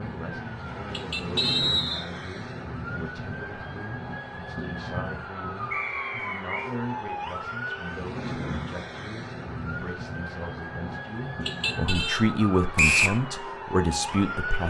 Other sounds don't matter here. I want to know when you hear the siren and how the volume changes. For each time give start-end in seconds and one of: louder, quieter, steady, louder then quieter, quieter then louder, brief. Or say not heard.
0.0-14.6 steady.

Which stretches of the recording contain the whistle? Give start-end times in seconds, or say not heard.
1.4-2.0, 5.7-6.7, 12.8-13.2.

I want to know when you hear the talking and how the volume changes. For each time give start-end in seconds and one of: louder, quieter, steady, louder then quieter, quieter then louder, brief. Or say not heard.
0.0-14.6 louder.